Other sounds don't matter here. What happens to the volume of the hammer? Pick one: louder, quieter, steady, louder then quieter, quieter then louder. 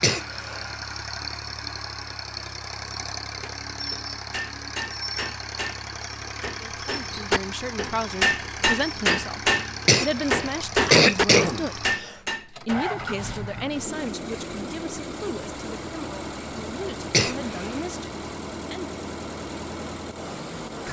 louder.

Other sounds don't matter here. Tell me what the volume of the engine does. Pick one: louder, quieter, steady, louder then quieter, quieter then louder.
steady.